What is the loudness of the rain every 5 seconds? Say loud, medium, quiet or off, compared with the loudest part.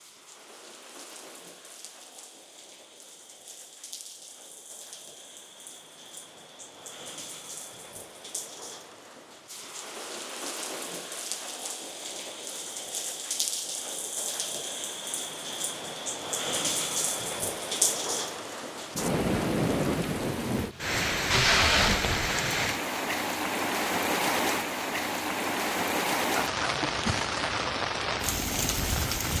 quiet, quiet, medium, loud, loud, loud.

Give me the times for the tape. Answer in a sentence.
The tape can be heard from 21.3 to 22.3 s.